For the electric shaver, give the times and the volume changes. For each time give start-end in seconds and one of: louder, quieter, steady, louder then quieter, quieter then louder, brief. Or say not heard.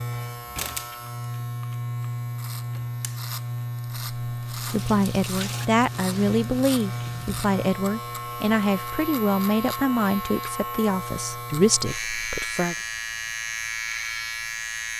0.0-14.9 steady.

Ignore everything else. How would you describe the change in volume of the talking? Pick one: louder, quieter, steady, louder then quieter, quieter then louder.
steady.